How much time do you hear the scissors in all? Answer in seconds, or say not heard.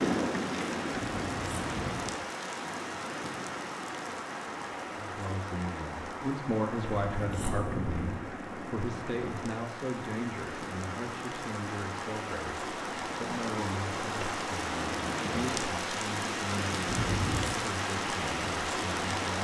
3 s.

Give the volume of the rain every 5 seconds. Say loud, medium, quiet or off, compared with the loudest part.
loud, medium, loud, loud.